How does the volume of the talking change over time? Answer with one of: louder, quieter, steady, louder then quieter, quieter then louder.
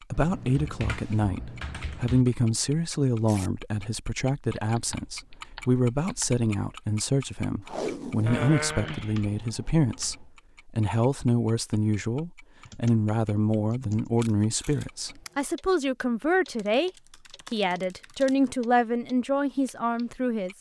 steady.